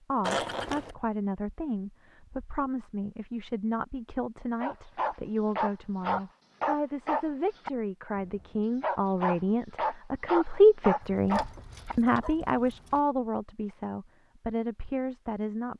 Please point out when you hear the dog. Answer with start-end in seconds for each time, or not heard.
4.6-12.3.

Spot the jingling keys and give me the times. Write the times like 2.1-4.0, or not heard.
0.2-0.9, 11.0-13.0.